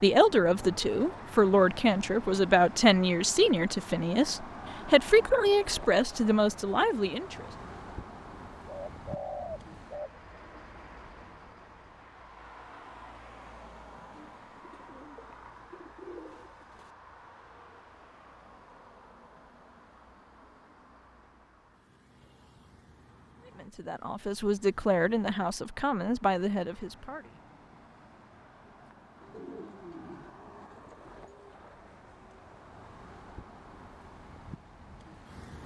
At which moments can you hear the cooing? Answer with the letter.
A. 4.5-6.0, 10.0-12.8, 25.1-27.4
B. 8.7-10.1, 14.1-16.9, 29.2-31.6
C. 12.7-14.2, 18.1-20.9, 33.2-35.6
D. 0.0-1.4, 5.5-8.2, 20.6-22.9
B.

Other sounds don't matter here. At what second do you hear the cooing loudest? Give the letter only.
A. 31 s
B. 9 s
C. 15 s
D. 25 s
B.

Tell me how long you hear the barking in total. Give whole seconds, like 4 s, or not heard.
not heard.